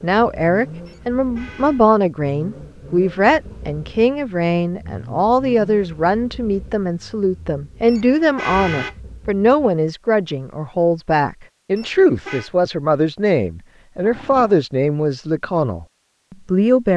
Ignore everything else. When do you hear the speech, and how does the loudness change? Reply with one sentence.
The speech can be heard from 0.0 to 16.9 s, at a steady volume.